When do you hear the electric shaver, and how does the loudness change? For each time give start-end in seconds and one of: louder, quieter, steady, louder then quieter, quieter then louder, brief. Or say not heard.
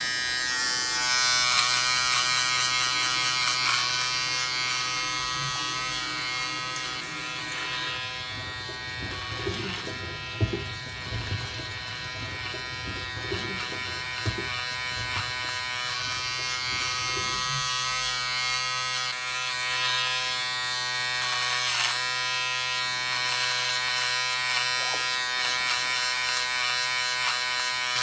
0.0-27.9 quieter then louder.